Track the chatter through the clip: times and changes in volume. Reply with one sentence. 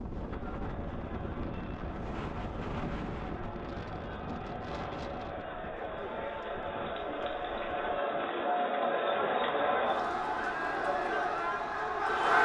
You can hear the chatter from 0.1 to 12.4 s, getting louder.